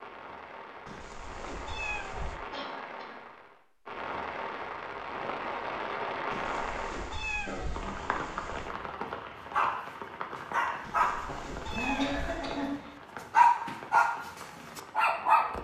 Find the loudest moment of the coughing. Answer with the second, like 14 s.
12 s.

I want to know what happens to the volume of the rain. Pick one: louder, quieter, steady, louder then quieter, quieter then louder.
louder then quieter.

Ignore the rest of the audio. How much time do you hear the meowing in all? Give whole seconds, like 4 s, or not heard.
6 s.